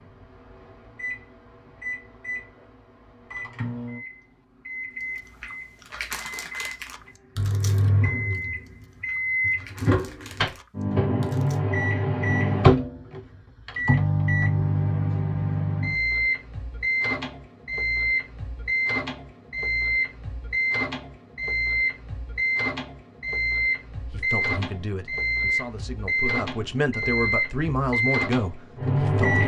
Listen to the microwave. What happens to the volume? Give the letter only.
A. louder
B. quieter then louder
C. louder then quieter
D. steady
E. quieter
A.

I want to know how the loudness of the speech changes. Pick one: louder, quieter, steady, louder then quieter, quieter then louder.
louder.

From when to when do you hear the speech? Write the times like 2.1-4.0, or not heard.
24.1-29.4.